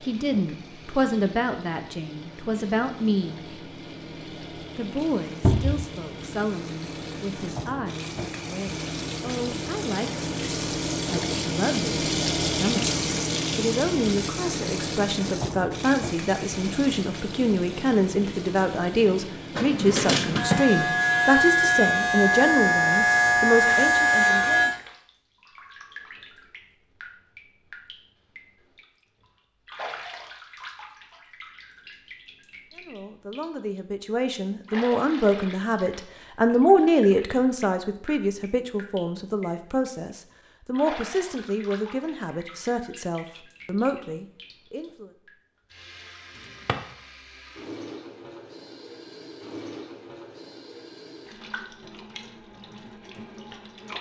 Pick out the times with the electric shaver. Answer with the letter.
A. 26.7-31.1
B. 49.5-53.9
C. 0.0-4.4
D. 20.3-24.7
D.